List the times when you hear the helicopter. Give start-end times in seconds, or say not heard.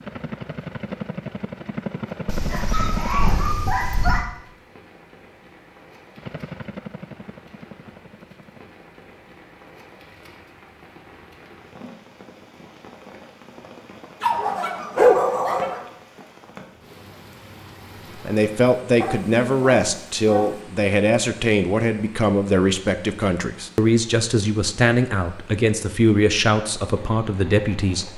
0.0-3.4, 6.2-8.7.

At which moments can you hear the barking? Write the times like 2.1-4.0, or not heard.
2.2-4.2, 14.2-15.8, 19.0-20.6.